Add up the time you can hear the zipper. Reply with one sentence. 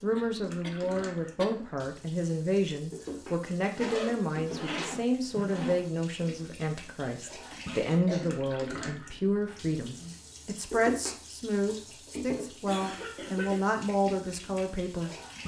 You can hear the zipper for 2 seconds altogether.